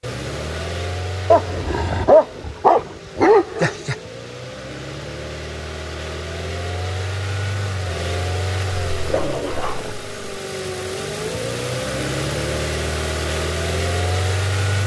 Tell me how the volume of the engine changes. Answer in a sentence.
The loudness of the engine goes up.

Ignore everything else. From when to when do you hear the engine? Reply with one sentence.
The engine can be heard from 0.0 to 14.8 s.